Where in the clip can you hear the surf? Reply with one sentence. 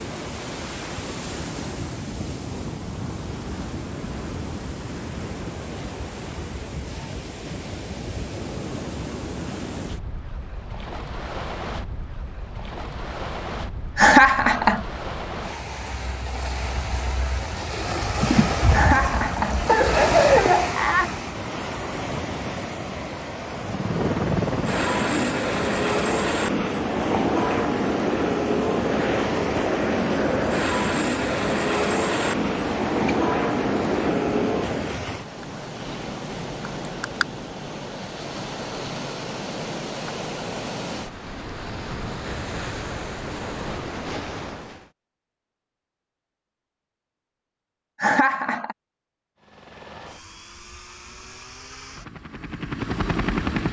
The surf can be heard from 0.0 to 44.9 s.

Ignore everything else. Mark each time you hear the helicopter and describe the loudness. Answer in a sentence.
You can hear the helicopter from 23.5 to 35.0 s, at a steady volume; and from 49.4 to 53.6 s, getting louder.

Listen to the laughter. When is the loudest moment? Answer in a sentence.
The volume of the laughter peaks at 14 seconds.